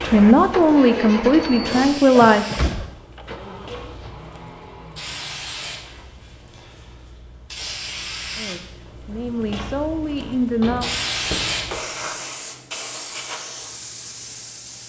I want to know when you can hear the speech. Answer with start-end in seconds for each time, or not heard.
0.0-2.5, 8.3-10.9.